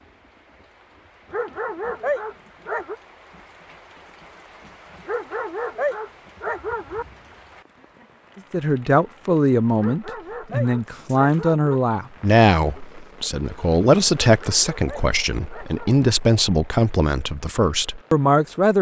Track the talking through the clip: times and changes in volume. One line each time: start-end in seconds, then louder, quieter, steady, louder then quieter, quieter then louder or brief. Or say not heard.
8.5-18.7 steady.